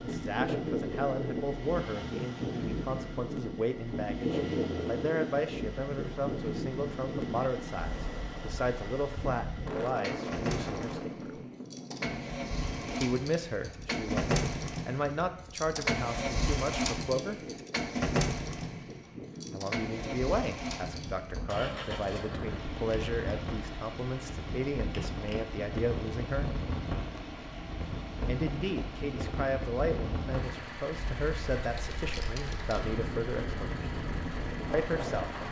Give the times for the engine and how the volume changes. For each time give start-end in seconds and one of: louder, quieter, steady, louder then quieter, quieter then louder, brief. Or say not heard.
0.0-35.4 louder then quieter.